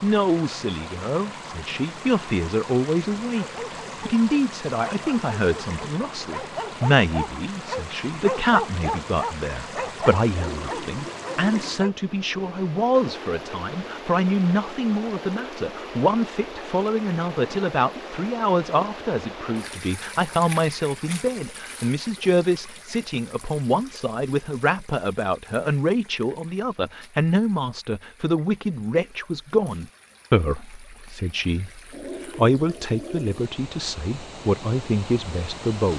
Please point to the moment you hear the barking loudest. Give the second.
8 s.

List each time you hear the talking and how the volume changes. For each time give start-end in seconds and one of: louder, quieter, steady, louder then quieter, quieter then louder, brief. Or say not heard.
0.0-35.9 steady.